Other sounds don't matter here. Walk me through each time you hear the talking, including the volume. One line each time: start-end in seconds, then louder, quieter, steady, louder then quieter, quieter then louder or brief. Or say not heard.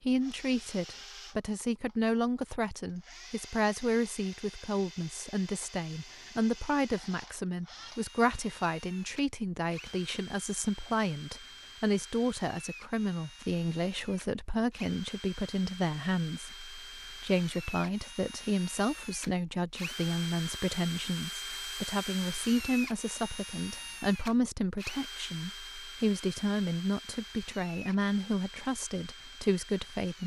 0.0-30.2 steady.